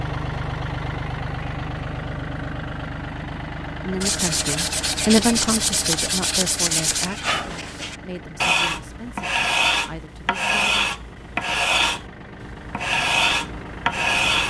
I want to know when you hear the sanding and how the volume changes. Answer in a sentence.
You can hear the sanding from 4.0 to 14.4 s, at a steady volume.